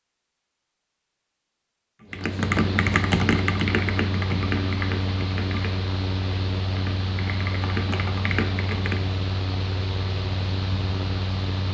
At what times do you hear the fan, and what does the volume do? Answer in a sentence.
The fan can be heard from 2.1 to 11.6 s, at a steady volume.